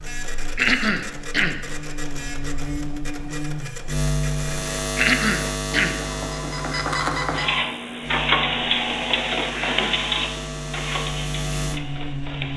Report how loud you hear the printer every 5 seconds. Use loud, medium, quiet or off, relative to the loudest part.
quiet, loud, medium.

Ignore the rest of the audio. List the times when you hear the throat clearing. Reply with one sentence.
The throat clearing can be heard from 0.4 to 1.6 s, from 4.8 to 6.0 s and from 9.5 to 10.1 s.